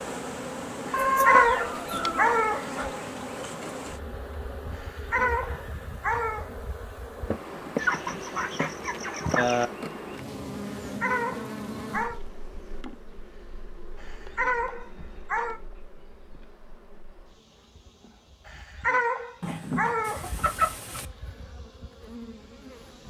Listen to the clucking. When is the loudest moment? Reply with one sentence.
The volume of the clucking peaks at 1 second.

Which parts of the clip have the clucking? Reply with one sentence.
The clucking can be heard from 0.9 to 2.9 s, from 7.8 to 9.7 s and from 19.4 to 21.1 s.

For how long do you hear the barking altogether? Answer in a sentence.
The barking can be heard for 9 seconds in total.